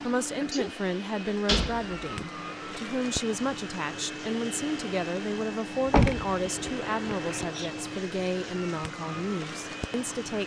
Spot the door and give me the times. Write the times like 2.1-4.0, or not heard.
1.4-1.9, 5.8-7.5.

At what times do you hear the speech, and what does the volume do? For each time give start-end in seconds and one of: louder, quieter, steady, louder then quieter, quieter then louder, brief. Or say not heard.
0.0-10.4 steady.